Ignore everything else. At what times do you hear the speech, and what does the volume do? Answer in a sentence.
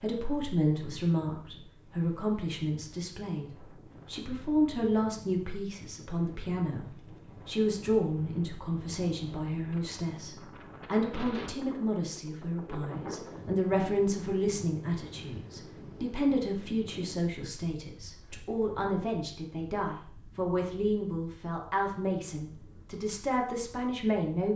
You can hear the speech from 0.0 to 24.5 s, at a steady volume.